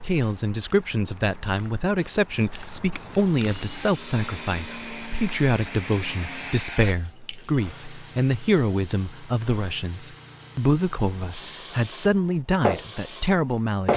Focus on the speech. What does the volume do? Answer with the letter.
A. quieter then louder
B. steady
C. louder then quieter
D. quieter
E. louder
B.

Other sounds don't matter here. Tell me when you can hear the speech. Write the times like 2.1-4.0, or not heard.
0.0-13.9.